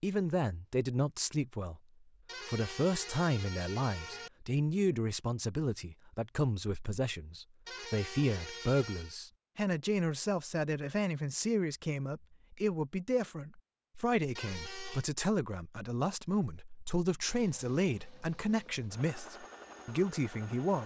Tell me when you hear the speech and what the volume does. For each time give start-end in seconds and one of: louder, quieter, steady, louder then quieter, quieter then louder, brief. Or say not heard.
0.0-1.8 brief
2.5-20.8 steady.